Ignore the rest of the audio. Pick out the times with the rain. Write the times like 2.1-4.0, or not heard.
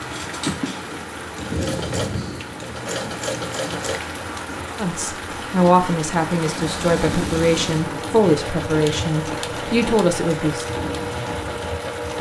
0.0-12.1.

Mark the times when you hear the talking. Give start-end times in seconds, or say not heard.
4.8-10.7.